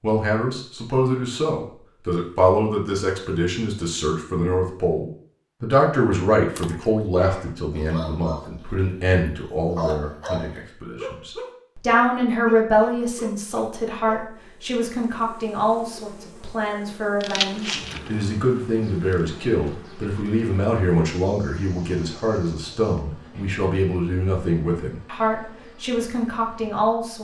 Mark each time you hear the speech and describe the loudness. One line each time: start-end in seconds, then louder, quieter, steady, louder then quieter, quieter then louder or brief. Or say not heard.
0.0-27.1 steady.